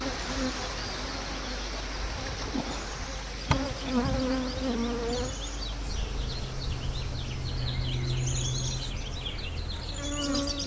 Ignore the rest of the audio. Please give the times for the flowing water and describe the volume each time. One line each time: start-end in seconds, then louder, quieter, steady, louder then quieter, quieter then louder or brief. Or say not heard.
0.0-10.6 quieter.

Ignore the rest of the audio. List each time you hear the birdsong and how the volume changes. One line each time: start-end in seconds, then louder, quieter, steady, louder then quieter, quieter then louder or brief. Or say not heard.
0.1-10.6 louder.